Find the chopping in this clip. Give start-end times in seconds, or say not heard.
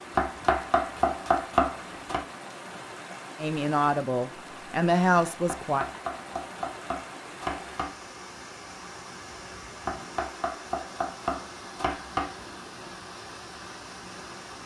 0.1-2.2, 5.5-8.0, 9.8-12.3.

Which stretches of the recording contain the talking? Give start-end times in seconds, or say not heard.
3.4-5.8.